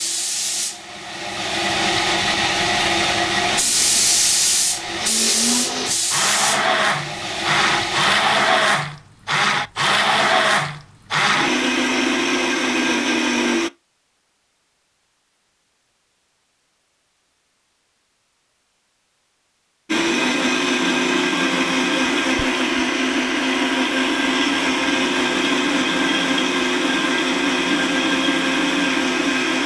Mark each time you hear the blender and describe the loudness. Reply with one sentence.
The blender can be heard from 5.0 to 13.7 s, at a steady volume; and from 19.9 to 29.6 s, at a steady volume.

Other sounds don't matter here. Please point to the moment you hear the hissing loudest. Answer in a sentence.
The volume of the hissing peaks at 4 seconds.